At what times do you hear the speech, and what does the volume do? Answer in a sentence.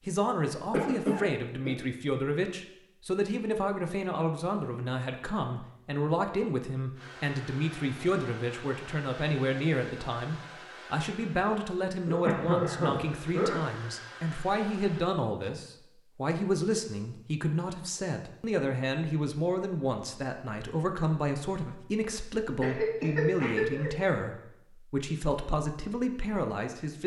The speech can be heard from 0.1 to 27.0 s, at a steady volume.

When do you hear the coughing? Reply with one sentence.
The coughing can be heard from 0.7 to 1.7 s, from 12.1 to 13.6 s and from 22.6 to 23.9 s.